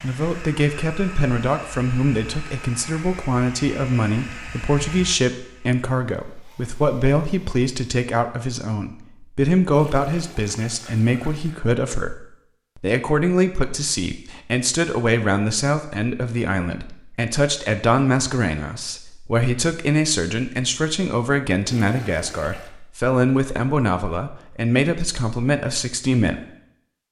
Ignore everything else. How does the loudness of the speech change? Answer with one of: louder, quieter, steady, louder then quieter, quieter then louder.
steady.